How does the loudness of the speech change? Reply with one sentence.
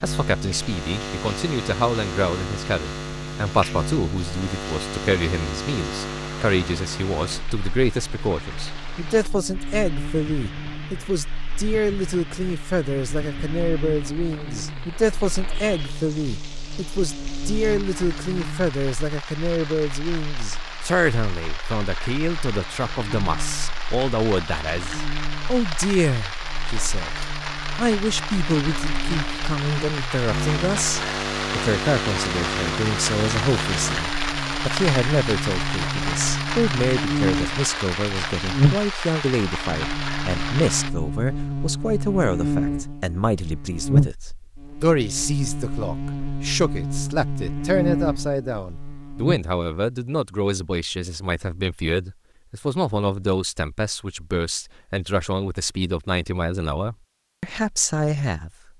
The loudness of the speech stays about the same.